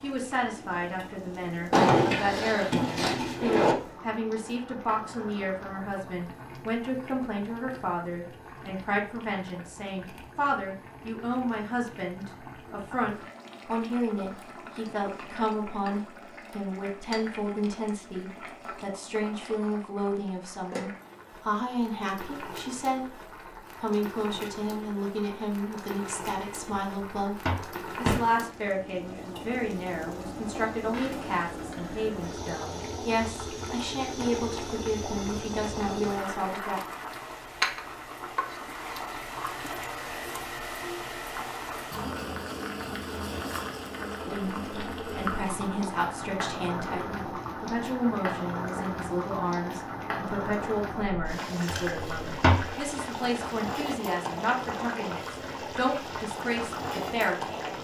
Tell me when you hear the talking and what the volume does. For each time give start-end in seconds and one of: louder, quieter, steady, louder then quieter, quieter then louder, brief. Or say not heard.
0.0-36.8 steady
44.2-57.7 steady.